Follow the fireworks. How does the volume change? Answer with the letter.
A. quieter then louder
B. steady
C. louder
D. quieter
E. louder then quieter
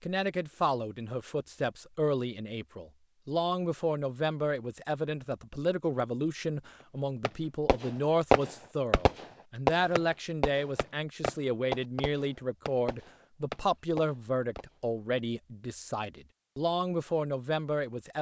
D.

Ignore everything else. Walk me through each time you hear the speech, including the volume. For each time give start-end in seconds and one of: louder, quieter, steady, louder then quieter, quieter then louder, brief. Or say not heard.
0.0-18.1 steady.